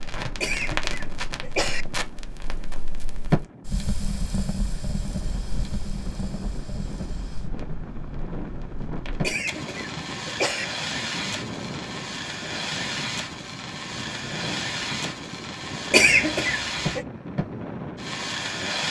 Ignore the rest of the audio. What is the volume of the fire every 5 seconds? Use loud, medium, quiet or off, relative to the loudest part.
loud, medium, loud, loud.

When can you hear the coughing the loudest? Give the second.
16 s.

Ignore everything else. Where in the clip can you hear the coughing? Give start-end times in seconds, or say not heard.
0.4-1.9, 9.2-10.7, 15.9-17.1.